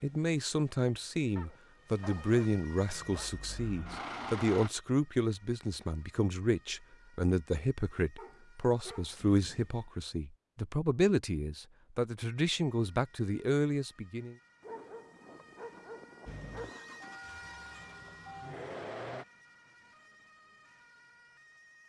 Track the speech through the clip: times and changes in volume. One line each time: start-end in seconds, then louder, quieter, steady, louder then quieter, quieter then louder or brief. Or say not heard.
0.0-14.3 steady.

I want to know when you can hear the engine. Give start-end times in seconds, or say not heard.
2.9-4.7, 16.2-19.2.